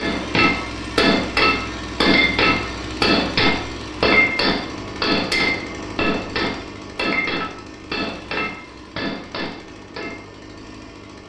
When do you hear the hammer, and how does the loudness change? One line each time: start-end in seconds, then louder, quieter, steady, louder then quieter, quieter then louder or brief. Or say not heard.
0.0-10.2 quieter.